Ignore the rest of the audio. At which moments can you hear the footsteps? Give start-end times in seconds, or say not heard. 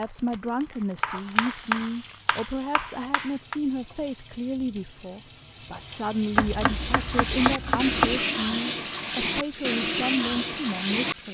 not heard.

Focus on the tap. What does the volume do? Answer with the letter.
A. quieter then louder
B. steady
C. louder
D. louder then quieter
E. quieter
C.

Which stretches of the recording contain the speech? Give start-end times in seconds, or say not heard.
0.0-11.2.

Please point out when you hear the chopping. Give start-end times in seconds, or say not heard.
1.0-3.5, 6.3-8.2.